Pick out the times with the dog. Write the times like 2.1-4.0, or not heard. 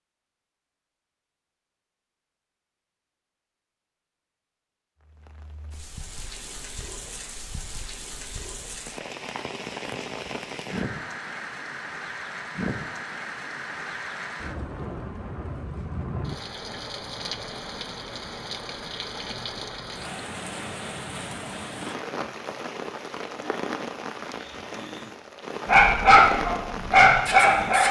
25.6-27.8.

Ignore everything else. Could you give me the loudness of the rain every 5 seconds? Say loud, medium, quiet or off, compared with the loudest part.
off, medium, loud, loud, loud, loud.